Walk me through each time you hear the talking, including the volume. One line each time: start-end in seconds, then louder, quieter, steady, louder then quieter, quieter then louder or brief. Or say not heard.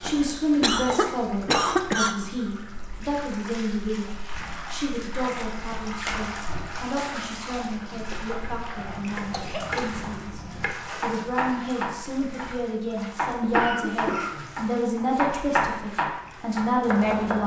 0.0-17.4 quieter then louder.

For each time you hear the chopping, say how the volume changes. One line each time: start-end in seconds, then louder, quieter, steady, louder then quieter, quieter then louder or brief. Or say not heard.
0.0-1.9 brief
8.4-17.4 louder.